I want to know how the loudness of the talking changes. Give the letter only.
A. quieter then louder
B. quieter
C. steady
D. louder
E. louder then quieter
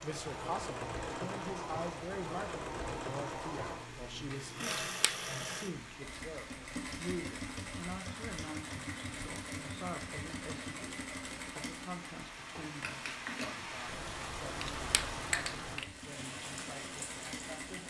B.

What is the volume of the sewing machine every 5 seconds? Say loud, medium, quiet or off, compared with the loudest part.
loud, loud, loud, medium.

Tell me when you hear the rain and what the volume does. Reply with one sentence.
The rain can be heard from 0.0 to 17.8 s, getting louder.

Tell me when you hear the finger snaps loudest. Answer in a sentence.
The volume of the finger snaps peaks at 15 seconds.